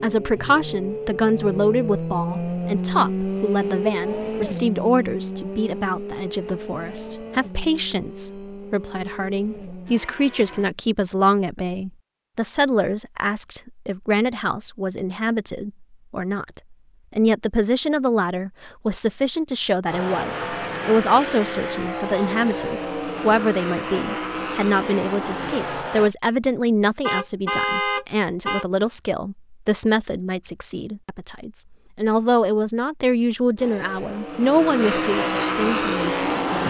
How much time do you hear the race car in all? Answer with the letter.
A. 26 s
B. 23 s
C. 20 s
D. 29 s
C.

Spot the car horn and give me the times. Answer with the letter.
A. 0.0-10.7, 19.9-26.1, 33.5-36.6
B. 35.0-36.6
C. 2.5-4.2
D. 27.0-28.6
D.